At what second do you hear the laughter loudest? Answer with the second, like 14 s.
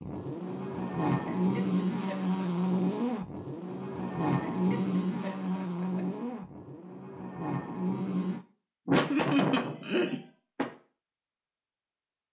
9 s.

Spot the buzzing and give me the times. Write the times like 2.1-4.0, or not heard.
0.0-8.4.